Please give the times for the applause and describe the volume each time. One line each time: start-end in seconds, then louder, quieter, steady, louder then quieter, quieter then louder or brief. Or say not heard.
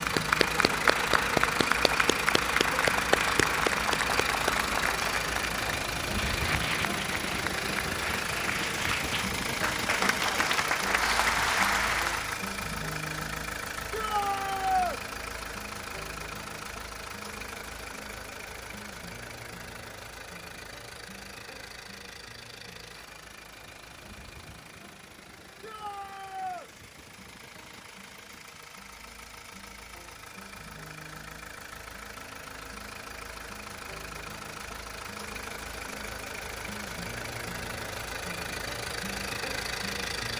0.0-12.4 quieter then louder.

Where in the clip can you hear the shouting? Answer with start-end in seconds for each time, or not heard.
13.9-15.0, 25.6-26.7.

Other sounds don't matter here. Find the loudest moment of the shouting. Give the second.
15 s.